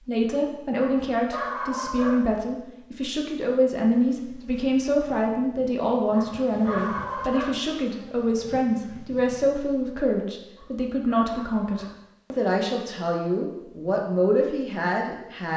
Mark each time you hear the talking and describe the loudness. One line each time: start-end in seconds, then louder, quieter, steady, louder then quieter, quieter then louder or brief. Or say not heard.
0.1-15.5 steady.